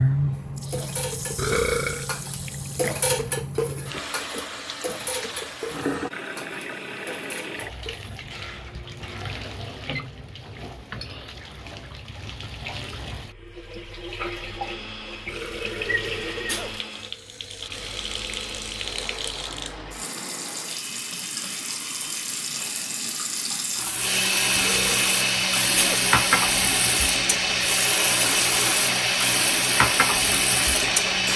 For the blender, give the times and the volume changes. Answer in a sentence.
The blender can be heard from 14.3 to 31.3 s, getting louder.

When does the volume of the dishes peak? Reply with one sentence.
The volume of the dishes peaks at 3 seconds.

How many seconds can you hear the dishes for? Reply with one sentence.
You can hear the dishes for 9 seconds altogether.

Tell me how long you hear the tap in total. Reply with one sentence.
The tap can be heard for 31 seconds in total.